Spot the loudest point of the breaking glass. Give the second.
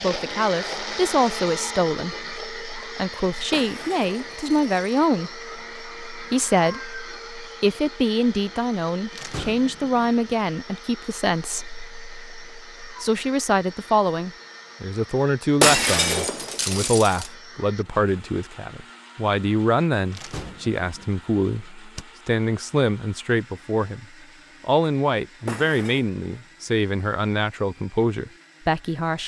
16 s.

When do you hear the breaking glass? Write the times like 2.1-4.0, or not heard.
3.5-5.0, 15.6-17.3, 25.4-26.1.